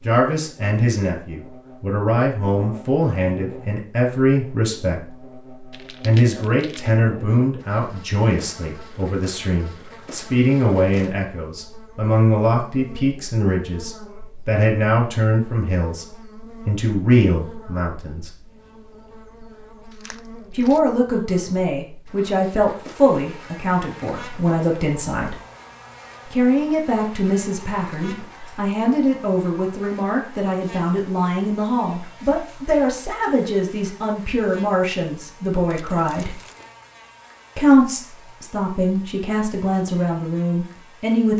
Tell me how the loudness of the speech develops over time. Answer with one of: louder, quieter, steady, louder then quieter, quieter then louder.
steady.